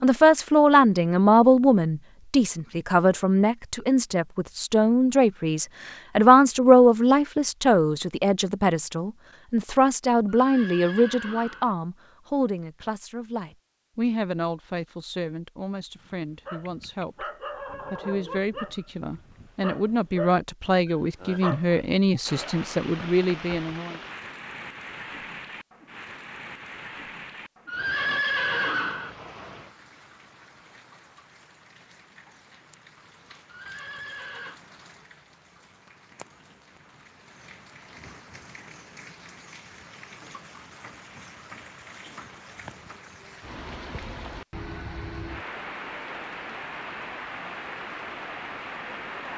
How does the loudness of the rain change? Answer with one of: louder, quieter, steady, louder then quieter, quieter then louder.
quieter then louder.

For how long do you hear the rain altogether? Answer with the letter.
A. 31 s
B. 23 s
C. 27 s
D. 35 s
C.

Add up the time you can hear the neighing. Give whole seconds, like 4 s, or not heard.
4 s.